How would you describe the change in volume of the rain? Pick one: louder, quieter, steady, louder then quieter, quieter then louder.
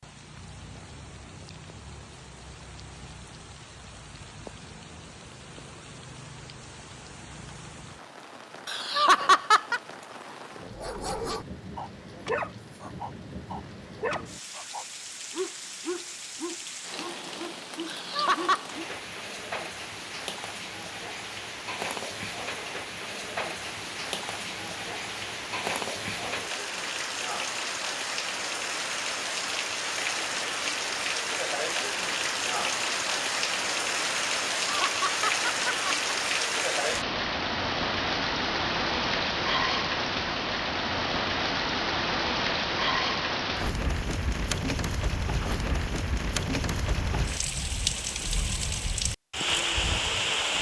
louder.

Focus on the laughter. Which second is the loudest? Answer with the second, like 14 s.
9 s.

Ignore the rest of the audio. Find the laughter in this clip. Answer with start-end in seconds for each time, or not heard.
8.7-9.8, 17.9-18.6, 34.6-36.1.